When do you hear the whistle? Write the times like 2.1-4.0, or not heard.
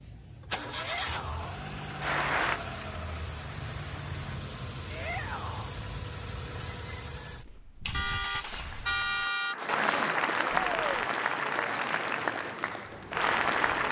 not heard.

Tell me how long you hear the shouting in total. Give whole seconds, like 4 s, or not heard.
2 s.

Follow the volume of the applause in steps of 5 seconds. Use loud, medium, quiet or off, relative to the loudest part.
medium, medium, loud.